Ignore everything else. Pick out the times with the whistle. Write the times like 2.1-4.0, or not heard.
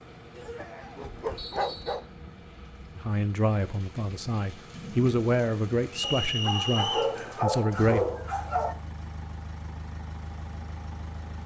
1.4-2.0, 5.9-7.2.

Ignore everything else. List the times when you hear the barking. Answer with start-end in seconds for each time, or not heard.
0.3-2.0, 6.0-8.8.